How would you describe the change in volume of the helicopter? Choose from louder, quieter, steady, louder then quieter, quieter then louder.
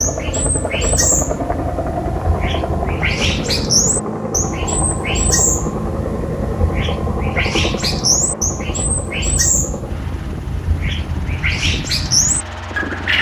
quieter.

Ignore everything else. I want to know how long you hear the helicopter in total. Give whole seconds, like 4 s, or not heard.
13 s.